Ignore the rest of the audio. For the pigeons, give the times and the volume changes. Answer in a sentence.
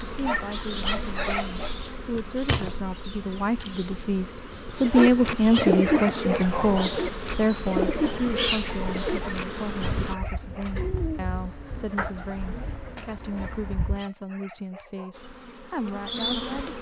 The pigeons can be heard from 4.8 to 14.1 s, getting quieter.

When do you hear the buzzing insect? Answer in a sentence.
You can hear the buzzing insect from 0.0 to 10.2 s and from 15.1 to 16.7 s.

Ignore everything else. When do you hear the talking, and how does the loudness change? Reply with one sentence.
You can hear the talking from 0.0 to 16.7 s, getting louder then quieter.